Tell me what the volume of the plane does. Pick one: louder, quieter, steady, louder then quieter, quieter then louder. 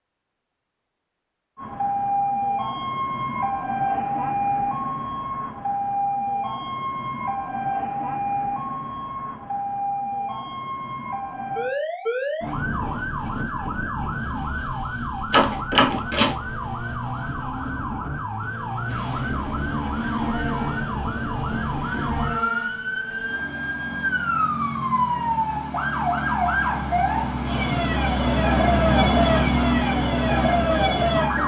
louder.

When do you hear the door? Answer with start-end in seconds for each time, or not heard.
15.3-16.4.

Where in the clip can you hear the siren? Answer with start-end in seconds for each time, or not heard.
1.6-31.4.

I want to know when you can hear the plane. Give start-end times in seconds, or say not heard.
18.9-31.4.